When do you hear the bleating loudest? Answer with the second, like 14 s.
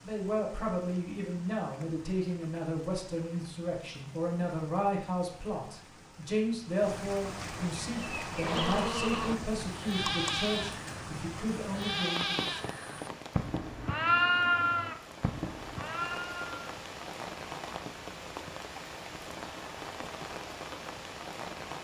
14 s.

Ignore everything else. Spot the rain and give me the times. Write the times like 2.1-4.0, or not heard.
0.0-21.7.